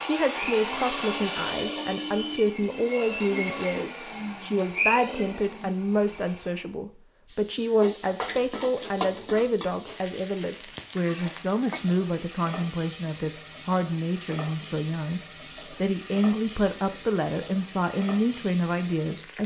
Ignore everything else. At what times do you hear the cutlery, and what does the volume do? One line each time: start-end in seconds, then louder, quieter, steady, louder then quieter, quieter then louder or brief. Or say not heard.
not heard.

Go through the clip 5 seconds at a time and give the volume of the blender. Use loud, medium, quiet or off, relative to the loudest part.
loud, medium, off, off.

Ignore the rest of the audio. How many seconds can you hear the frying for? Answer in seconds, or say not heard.
12 s.